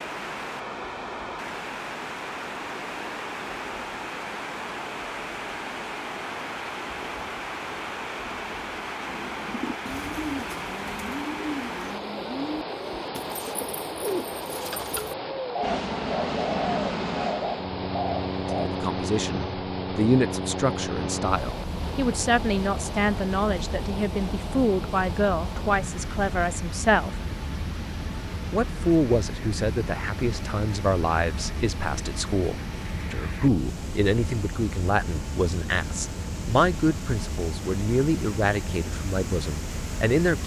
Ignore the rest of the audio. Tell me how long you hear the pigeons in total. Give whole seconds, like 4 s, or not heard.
10 s.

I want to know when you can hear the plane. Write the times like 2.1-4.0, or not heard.
15.6-40.4.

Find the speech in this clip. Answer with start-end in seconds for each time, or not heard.
18.6-27.1, 28.5-40.4.